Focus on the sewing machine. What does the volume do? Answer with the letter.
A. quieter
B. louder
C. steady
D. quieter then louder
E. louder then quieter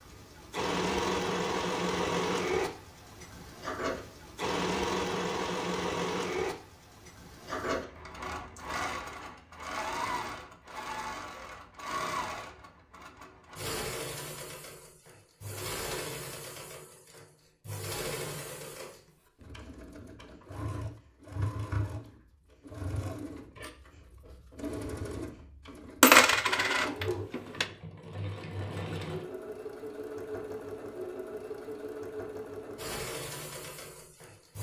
A.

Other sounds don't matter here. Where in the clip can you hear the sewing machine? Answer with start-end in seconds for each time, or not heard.
0.1-34.5.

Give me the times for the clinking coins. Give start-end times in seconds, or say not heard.
26.0-27.6.